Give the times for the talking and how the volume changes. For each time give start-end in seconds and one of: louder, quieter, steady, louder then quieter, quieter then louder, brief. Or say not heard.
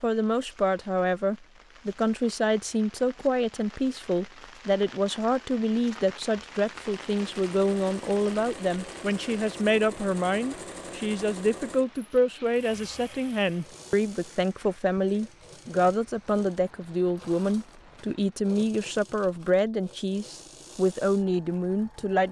0.0-22.2 steady.